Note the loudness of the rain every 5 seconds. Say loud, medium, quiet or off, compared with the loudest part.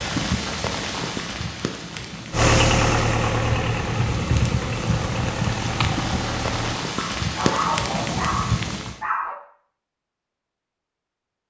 loud, loud, off.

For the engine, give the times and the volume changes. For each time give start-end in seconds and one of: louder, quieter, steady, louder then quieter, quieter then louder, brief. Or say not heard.
2.3-6.8 quieter.